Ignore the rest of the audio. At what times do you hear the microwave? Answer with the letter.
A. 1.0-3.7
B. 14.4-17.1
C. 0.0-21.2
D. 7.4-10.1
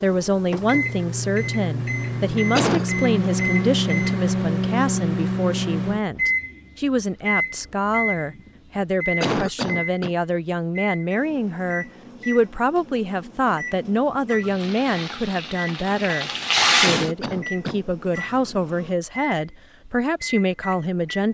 C.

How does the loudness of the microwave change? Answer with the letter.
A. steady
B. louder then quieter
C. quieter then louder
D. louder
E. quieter
E.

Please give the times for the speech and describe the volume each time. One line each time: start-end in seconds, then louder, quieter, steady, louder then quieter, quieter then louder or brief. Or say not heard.
0.0-21.2 steady.